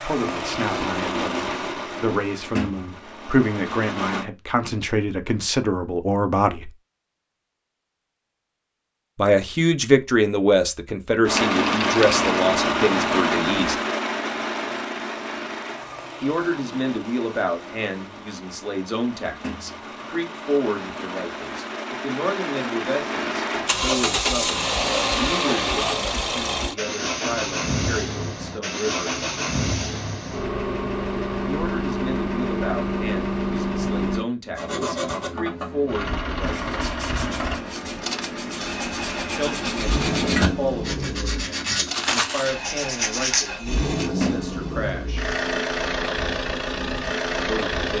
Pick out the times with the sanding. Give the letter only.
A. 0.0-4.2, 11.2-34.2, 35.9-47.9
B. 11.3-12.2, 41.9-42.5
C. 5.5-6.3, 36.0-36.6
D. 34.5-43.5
D.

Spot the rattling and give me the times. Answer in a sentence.
The rattling can be heard from 11.3 to 12.2 s and from 41.9 to 42.5 s.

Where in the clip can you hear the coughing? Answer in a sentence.
The coughing can't be heard in this clip.